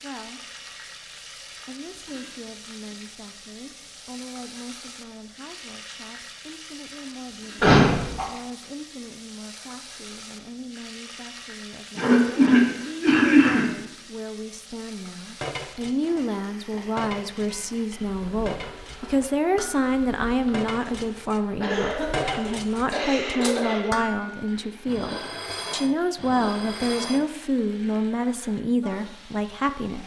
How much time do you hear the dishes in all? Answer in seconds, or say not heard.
12 s.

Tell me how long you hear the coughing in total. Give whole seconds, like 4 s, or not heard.
5 s.